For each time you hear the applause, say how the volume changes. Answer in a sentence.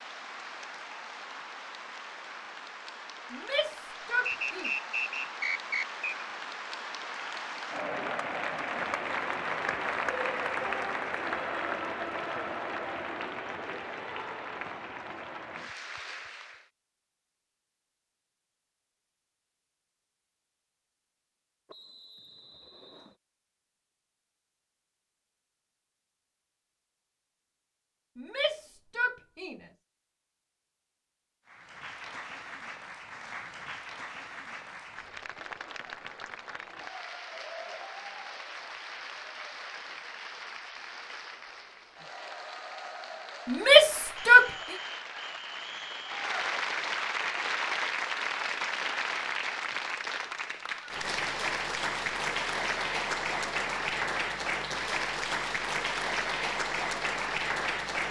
The applause can be heard from 0.0 to 16.7 s, getting louder then quieter; and from 31.4 to 58.0 s, getting louder.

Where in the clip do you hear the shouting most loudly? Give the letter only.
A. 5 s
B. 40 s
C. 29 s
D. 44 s
D.